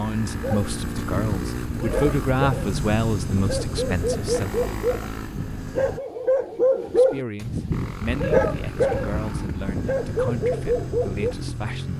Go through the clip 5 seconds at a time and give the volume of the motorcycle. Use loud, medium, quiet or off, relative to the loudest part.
loud, medium, loud.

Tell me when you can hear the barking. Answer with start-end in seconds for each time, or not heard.
0.4-11.3.